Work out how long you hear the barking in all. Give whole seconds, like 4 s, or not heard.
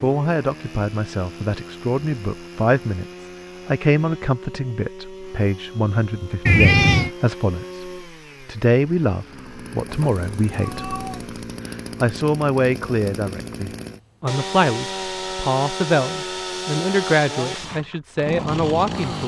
not heard.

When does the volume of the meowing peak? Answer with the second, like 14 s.
7 s.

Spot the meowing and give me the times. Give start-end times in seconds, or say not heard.
6.5-7.1, 9.8-11.3.